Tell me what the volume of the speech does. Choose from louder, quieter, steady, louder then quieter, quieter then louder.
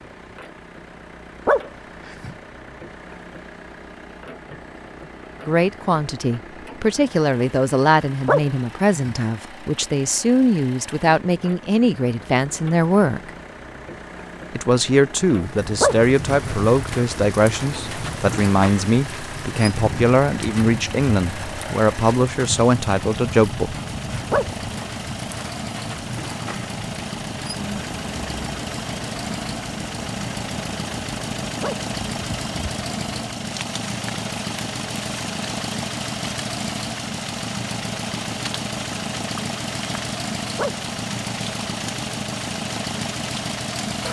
steady.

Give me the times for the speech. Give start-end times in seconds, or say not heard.
5.5-13.3, 14.5-23.8.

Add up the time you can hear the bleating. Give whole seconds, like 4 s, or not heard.
not heard.